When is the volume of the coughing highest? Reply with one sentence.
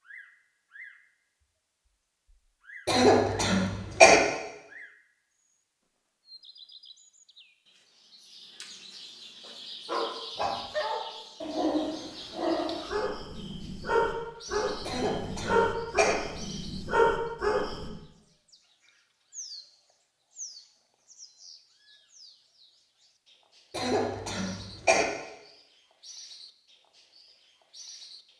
The loudest moment of the coughing is at 4 seconds.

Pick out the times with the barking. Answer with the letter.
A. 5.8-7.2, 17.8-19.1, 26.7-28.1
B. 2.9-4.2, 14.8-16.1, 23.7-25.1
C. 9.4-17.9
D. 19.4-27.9
C.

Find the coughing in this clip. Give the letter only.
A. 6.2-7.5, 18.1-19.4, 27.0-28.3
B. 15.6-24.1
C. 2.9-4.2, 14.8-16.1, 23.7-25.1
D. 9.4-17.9
C.